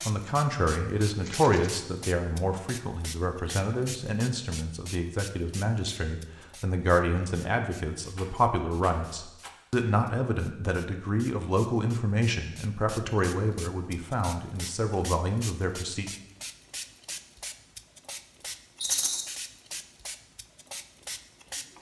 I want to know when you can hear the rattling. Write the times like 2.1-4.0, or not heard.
1.1-1.7, 8.2-9.6, 18.8-19.2.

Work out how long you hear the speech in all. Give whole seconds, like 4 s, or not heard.
16 s.